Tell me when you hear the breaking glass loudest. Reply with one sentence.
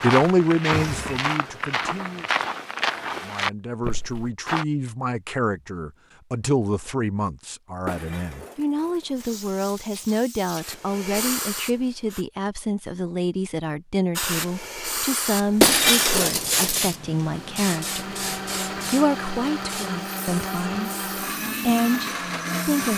The loudest moment of the breaking glass is at 16 seconds.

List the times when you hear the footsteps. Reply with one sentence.
You can hear the footsteps from 0.0 to 4.7 s.